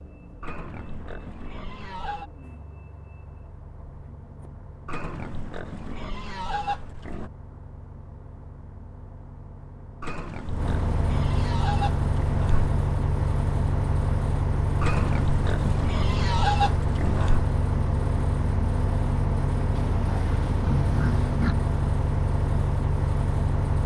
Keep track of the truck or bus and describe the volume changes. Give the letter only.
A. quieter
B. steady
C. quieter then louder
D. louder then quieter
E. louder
E.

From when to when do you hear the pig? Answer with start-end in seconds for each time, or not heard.
0.4-2.3, 4.8-7.3, 10.0-12.7, 14.8-17.4, 19.8-21.6.